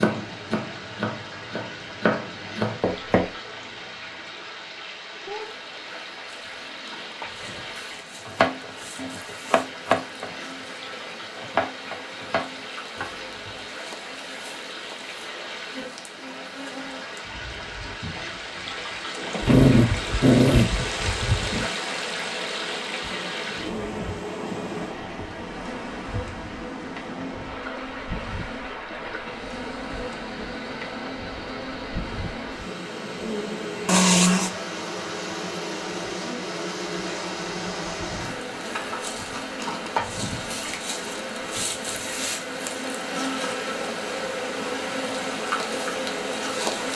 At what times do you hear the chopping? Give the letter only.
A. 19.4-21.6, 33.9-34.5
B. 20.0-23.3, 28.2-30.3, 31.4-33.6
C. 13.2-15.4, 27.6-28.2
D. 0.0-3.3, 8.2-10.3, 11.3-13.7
D.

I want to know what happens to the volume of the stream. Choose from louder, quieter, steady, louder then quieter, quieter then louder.
louder then quieter.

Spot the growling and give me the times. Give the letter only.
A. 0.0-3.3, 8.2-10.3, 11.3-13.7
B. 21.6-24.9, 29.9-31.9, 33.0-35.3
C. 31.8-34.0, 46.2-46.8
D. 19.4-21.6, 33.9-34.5
D.